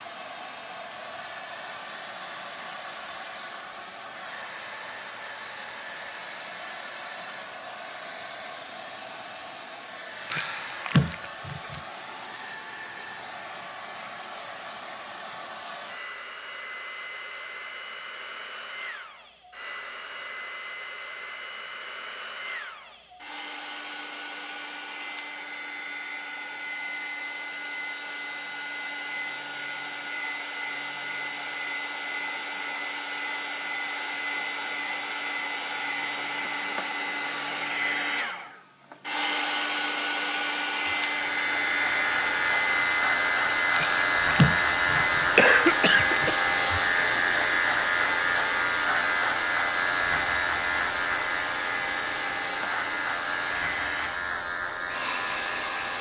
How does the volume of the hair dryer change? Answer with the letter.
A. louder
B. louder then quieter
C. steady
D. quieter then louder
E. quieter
A.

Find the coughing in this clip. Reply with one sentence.
You can hear the coughing from 10.3 to 11.8 s and from 43.7 to 46.4 s.